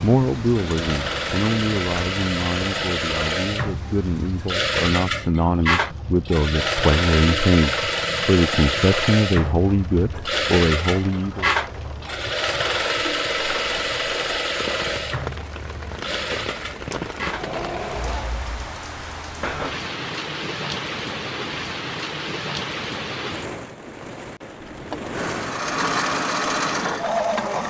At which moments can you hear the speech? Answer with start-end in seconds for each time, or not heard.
0.0-11.5.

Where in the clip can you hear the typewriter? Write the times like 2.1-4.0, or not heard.
not heard.